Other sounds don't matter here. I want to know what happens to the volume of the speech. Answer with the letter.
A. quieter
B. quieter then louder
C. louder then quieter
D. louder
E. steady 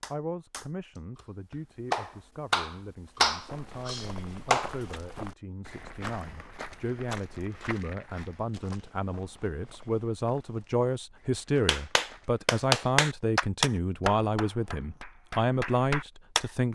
D.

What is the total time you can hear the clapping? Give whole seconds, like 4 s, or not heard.
10 s.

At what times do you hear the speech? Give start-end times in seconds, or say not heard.
0.0-16.7.